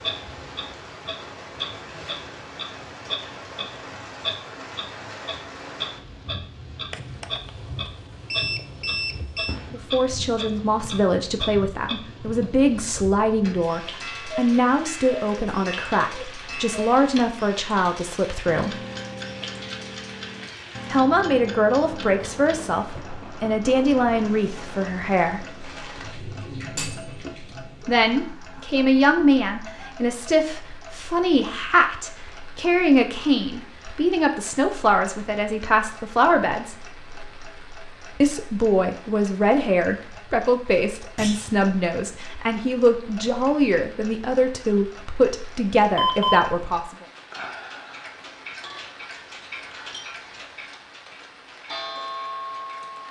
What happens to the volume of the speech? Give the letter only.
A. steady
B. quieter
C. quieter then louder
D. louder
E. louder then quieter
A.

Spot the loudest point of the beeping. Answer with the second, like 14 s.
46 s.